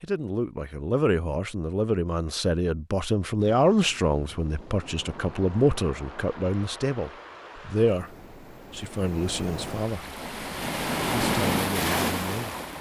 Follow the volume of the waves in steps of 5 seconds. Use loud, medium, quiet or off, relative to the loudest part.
quiet, quiet, loud.